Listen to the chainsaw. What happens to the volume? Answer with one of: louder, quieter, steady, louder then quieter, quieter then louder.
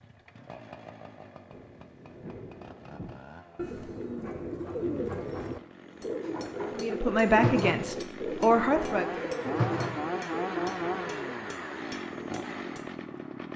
louder.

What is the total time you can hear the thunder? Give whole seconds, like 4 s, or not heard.
2 s.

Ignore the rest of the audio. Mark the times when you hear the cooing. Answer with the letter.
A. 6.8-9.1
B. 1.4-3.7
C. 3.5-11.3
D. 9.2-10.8
C.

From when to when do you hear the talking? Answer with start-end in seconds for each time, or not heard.
6.8-9.1.